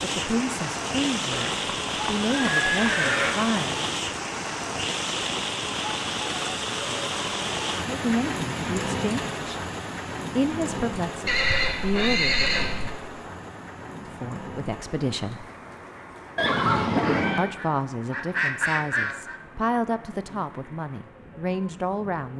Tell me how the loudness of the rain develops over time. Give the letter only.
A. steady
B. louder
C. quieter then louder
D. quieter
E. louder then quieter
D.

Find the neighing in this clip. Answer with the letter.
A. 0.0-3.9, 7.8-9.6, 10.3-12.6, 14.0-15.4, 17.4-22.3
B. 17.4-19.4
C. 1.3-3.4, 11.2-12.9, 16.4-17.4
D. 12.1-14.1
C.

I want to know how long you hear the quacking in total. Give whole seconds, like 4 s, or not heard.
2 s.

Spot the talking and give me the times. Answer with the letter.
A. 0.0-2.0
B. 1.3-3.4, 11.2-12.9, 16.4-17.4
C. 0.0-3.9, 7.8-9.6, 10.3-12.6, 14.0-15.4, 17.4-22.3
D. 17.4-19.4
C.